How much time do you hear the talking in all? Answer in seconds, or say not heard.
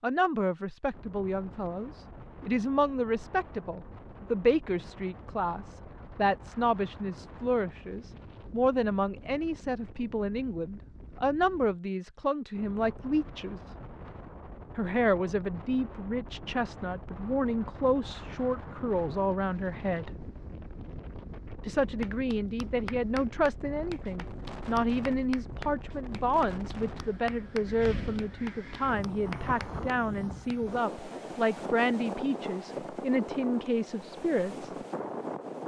32 s.